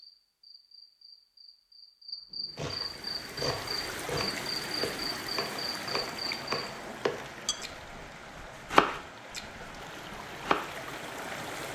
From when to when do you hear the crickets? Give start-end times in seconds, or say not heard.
0.0-6.6.